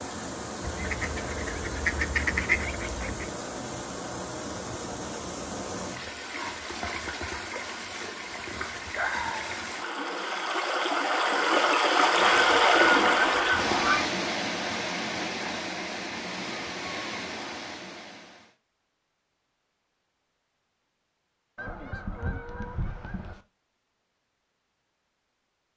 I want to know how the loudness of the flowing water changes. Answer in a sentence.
The loudness of the flowing water goes up, then down.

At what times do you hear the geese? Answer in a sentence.
The geese can be heard from 0.6 to 3.3 s, from 12.2 to 14.1 s and from 21.6 to 23.4 s.